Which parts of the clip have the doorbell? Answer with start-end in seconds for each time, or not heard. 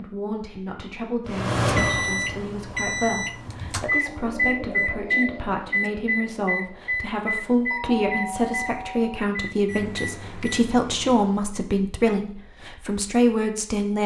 7.7-9.3.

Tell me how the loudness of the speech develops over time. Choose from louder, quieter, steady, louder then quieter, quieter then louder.
louder.